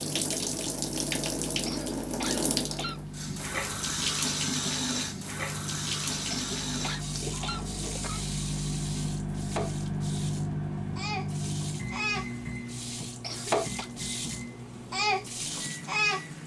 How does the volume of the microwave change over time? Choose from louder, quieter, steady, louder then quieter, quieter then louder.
louder then quieter.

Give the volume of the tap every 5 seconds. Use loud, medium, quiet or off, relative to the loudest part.
loud, medium, medium, loud.